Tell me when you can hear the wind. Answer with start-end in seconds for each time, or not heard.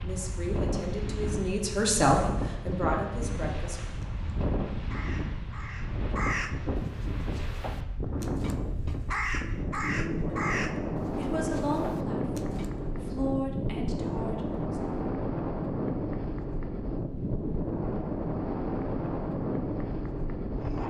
0.0-20.8.